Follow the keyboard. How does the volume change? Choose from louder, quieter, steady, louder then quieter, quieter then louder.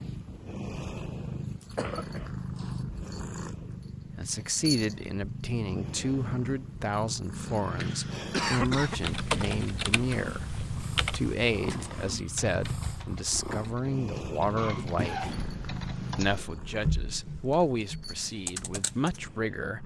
quieter then louder.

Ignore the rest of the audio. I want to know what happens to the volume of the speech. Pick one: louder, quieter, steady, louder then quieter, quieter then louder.
steady.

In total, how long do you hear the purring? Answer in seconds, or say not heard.
20 s.